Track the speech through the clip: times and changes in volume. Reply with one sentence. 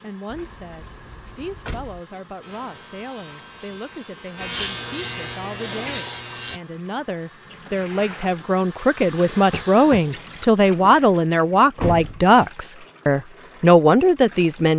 You can hear the speech from 0.0 to 14.7 s, getting louder.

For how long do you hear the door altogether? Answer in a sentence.
You can hear the door for 2 seconds altogether.